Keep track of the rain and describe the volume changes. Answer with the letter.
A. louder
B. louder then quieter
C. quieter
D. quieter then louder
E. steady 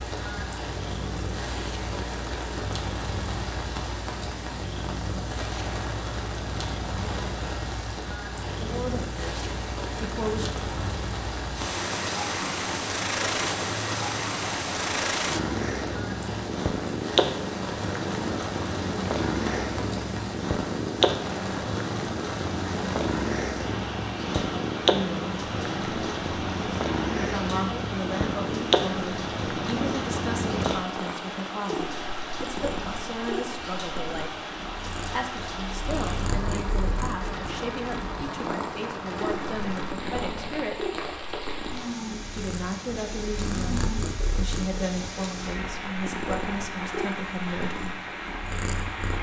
E.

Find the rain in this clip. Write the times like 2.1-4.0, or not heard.
0.0-49.1.